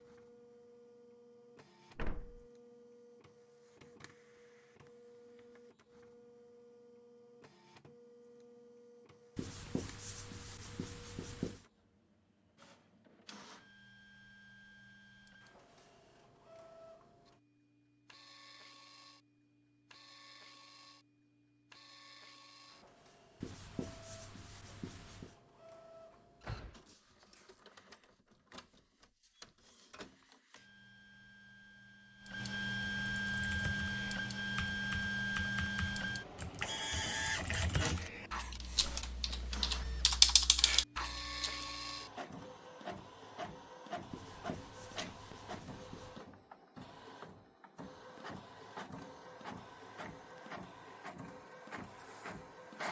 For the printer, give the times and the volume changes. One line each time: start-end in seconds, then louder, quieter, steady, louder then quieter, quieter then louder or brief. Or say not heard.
0.0-52.8 louder then quieter.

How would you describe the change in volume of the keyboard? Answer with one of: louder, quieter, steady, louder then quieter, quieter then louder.
louder.